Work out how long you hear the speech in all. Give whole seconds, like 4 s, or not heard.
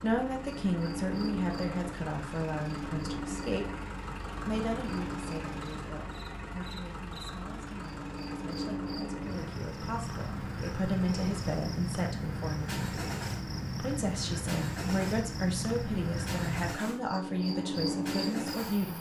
17 s.